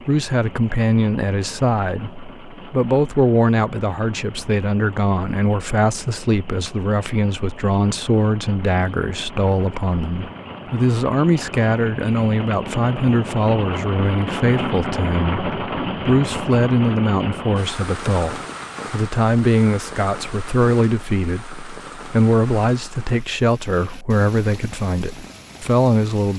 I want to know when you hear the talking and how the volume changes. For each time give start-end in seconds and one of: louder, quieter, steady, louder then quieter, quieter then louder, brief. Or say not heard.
0.1-26.3 steady.